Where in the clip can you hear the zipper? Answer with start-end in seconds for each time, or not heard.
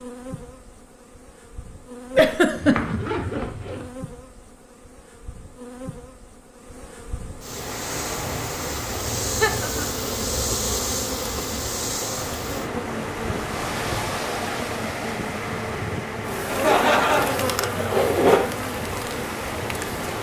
2.5-3.9, 17.4-18.5.